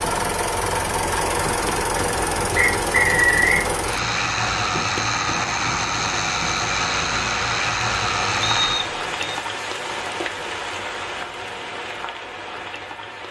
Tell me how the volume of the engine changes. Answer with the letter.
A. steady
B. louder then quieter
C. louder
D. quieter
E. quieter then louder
A.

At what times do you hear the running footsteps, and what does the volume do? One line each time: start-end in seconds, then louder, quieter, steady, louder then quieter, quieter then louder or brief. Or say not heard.
not heard.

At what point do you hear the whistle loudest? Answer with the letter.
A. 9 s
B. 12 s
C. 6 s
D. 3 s
D.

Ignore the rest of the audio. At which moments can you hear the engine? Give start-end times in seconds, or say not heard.
0.0-8.9.